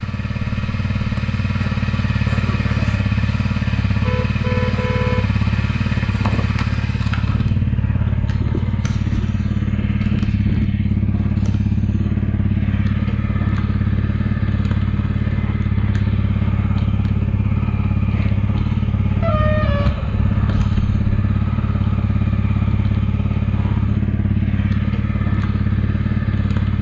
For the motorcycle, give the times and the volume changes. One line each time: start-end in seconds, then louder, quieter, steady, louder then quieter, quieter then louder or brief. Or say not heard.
0.0-26.7 steady.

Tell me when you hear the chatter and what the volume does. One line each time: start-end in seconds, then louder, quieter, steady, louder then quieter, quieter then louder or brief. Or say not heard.
not heard.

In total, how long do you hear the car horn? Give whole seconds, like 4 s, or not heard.
3 s.